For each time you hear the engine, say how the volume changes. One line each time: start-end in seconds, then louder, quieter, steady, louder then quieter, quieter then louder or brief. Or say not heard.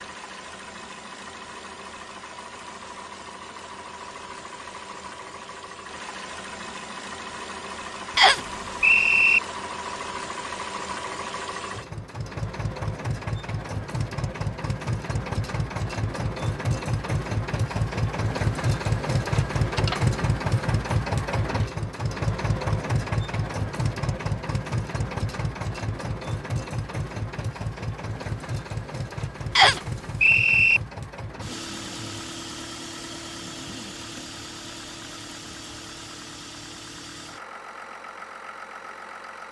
0.0-39.4 louder then quieter.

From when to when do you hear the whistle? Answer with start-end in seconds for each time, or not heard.
8.2-9.4, 29.6-30.8.